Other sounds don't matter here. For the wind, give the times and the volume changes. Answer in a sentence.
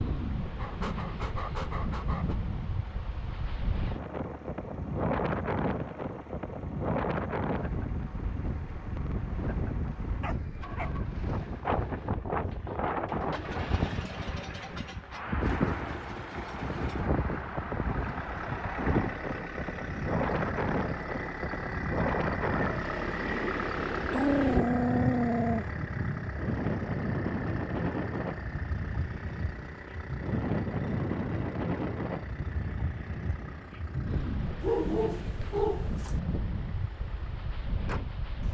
The wind can be heard from 0.0 to 38.4 s, at a steady volume.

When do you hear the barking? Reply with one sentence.
You can hear the barking from 0.6 to 2.4 s, from 10.2 to 10.9 s, from 24.1 to 25.6 s and from 34.6 to 36.1 s.